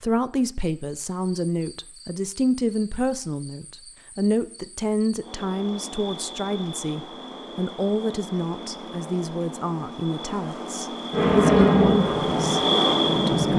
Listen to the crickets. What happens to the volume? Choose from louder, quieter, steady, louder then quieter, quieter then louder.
louder.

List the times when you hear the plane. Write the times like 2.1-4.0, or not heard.
11.1-13.5.